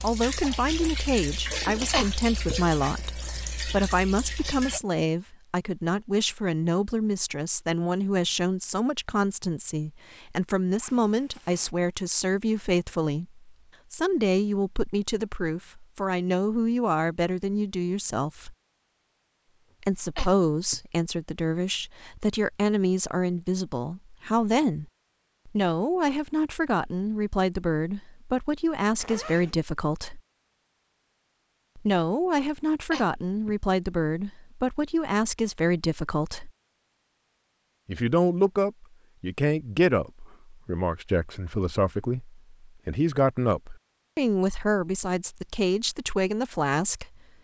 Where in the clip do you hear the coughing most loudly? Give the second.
2 s.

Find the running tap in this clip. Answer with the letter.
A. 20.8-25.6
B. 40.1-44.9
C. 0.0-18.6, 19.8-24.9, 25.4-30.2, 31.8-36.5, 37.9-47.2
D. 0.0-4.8
D.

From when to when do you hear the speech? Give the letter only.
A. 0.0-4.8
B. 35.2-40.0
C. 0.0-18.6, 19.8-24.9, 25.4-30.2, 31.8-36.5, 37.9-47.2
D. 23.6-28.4
C.